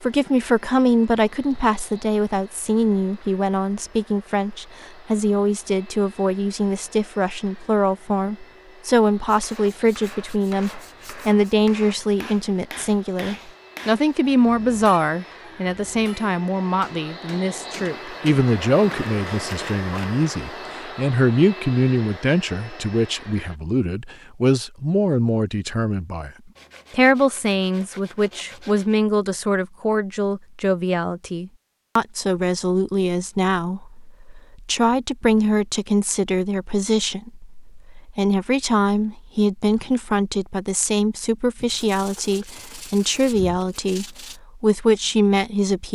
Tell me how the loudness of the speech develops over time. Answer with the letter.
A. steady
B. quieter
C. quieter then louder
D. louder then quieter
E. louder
A.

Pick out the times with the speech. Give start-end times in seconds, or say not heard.
0.0-26.3, 26.9-45.9.